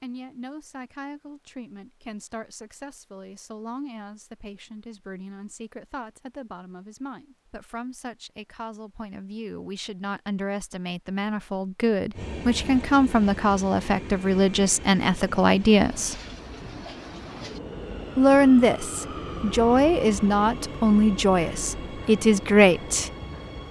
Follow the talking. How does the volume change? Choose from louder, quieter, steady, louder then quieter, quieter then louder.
louder.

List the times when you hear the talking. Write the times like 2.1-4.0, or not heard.
0.0-16.1, 18.1-23.1.